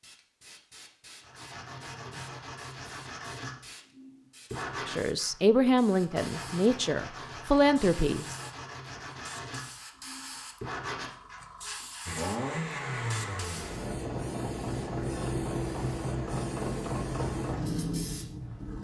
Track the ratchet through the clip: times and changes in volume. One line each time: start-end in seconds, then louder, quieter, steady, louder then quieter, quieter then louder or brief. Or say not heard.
not heard.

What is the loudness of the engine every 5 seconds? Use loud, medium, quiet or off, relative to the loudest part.
off, off, loud, loud.